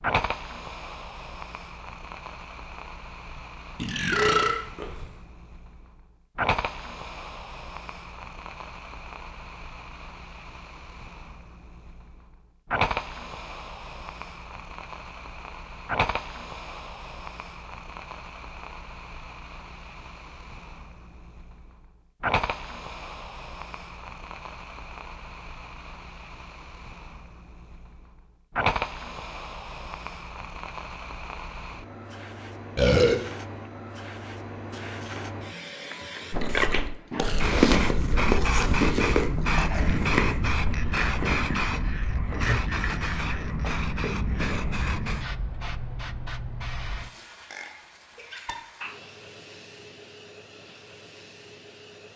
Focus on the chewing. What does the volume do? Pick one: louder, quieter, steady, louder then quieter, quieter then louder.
quieter.